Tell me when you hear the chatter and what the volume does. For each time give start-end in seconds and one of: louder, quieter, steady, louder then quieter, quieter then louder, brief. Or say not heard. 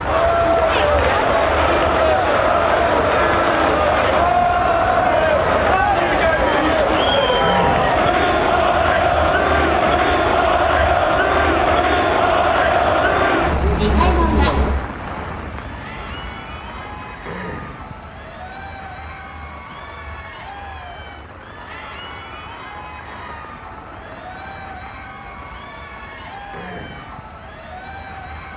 0.0-28.5 quieter.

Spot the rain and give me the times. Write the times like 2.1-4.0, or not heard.
0.0-28.5.